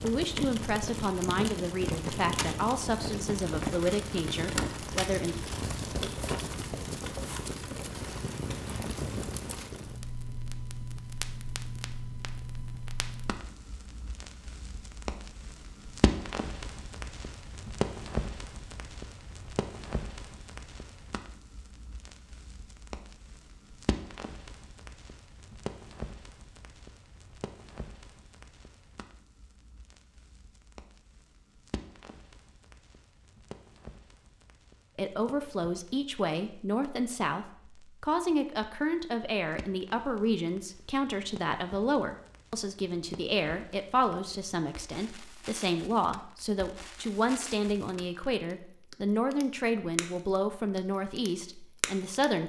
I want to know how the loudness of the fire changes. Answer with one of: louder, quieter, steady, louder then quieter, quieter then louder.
quieter then louder.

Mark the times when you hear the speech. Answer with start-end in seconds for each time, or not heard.
0.0-5.3, 35.0-52.4.